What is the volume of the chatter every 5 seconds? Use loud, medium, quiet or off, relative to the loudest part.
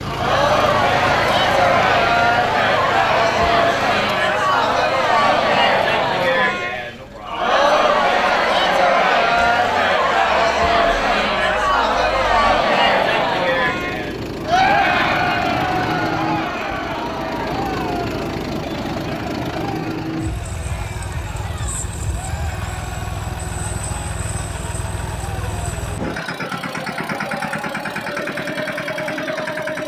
loud, loud, loud, medium, quiet, quiet.